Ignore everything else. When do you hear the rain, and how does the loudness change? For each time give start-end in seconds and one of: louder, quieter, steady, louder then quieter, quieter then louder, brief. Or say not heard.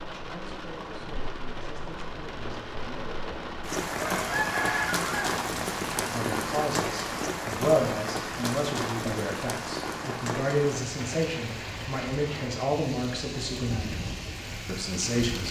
0.0-15.4 louder then quieter.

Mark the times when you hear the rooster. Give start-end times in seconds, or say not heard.
3.9-5.3.